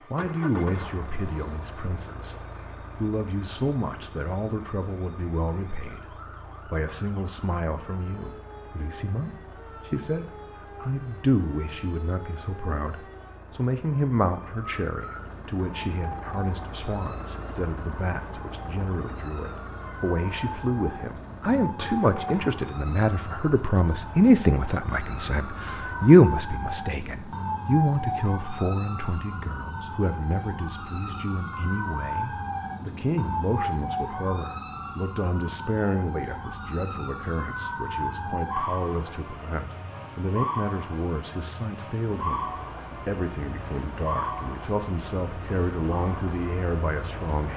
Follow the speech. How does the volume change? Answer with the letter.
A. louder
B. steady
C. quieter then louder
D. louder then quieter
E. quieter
D.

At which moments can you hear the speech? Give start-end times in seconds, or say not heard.
0.0-47.5.